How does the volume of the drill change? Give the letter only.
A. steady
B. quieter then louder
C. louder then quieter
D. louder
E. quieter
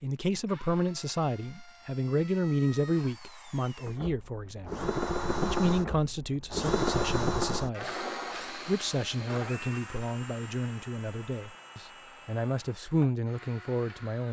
C.